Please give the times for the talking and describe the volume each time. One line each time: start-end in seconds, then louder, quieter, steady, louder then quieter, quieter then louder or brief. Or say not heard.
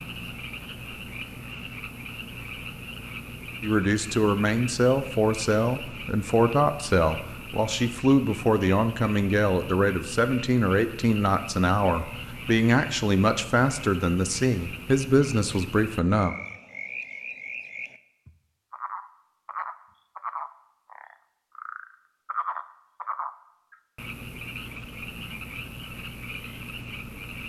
3.6-16.4 steady.